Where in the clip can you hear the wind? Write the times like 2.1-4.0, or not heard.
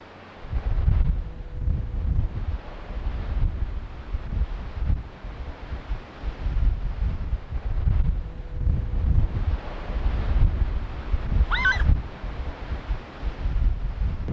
0.1-14.2.